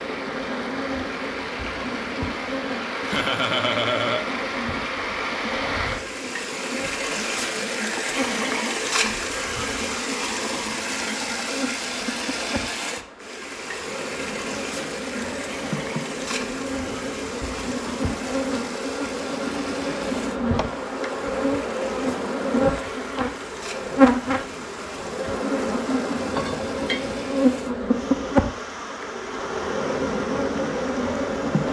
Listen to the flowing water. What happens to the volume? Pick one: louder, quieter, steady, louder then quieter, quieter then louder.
quieter.